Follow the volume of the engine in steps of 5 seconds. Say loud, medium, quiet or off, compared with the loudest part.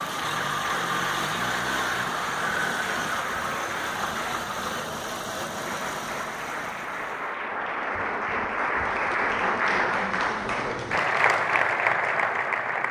loud, medium, off.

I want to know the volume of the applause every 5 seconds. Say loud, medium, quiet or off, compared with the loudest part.
medium, loud, loud.